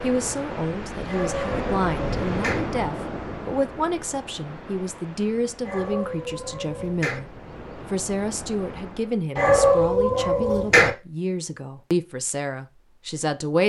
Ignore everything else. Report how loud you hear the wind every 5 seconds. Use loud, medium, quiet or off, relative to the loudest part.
loud, medium, off.